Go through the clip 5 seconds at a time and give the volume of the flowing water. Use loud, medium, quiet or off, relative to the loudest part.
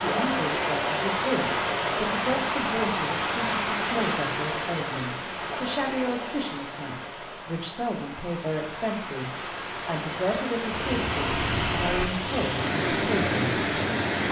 loud, medium, loud.